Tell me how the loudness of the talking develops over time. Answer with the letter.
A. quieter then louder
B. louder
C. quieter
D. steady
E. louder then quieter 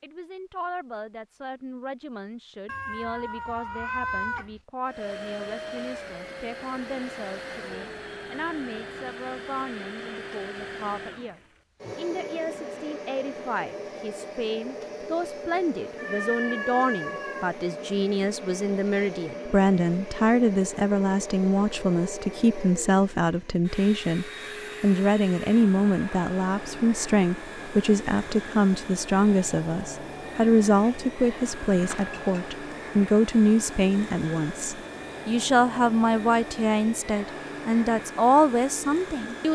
B.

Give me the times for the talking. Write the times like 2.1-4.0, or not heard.
0.0-39.4.